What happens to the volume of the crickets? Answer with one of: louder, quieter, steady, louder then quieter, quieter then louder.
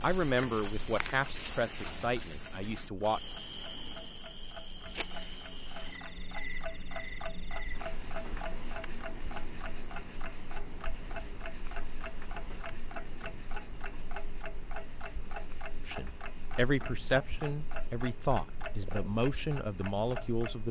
quieter.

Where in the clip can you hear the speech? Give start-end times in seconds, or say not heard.
0.0-3.2, 15.8-20.6.